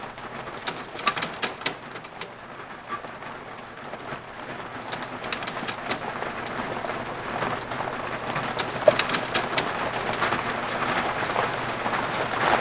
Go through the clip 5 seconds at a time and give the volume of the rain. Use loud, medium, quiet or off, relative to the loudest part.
medium, loud, loud.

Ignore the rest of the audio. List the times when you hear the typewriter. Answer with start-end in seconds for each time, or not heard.
0.5-2.4, 4.8-6.6, 8.4-10.2.